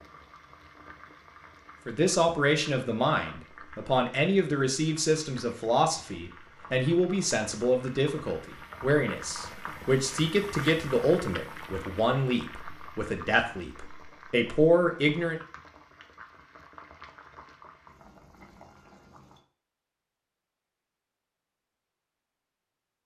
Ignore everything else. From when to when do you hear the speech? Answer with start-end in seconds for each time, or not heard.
1.9-15.4.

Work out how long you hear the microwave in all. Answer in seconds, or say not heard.
not heard.